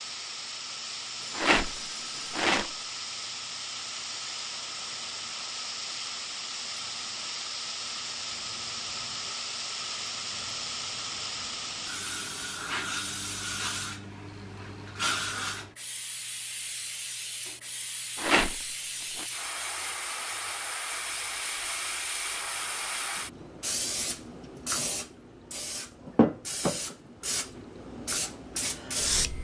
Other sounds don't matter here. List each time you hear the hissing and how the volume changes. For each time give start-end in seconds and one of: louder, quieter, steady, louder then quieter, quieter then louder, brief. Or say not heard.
0.0-29.3 steady.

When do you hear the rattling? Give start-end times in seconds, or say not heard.
1.3-2.7, 18.1-19.2.